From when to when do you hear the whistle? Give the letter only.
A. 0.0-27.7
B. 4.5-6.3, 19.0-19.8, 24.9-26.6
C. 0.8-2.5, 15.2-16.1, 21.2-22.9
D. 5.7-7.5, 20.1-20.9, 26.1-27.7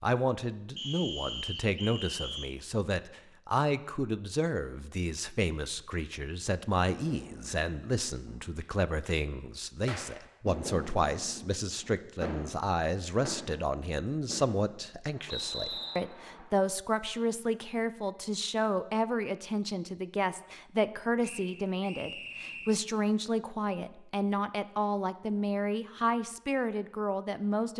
C.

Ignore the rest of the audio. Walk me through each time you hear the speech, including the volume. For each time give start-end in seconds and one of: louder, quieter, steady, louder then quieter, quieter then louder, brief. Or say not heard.
0.0-27.7 steady.